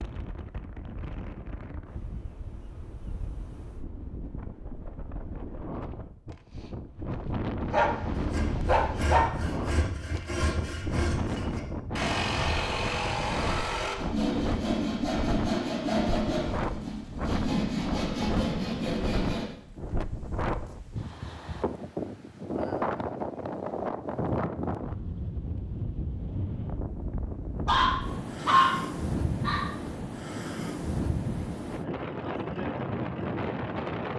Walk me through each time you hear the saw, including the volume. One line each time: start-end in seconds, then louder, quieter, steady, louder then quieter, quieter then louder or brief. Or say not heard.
8.1-19.6 louder.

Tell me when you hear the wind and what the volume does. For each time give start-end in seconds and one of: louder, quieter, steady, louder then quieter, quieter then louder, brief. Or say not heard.
0.0-34.1 louder.